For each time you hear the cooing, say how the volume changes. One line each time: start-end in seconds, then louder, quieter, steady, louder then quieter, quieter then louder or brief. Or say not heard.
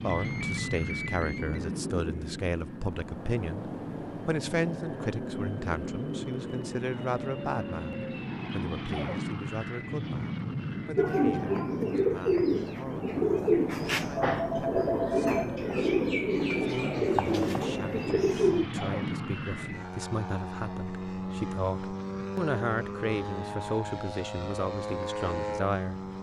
10.9-18.6 steady.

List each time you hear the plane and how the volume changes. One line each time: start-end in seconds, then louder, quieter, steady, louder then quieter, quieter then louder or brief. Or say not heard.
0.0-26.1 steady.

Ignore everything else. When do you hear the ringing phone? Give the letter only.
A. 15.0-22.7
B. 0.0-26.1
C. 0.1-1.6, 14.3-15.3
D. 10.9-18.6
C.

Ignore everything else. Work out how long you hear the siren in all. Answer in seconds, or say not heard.
not heard.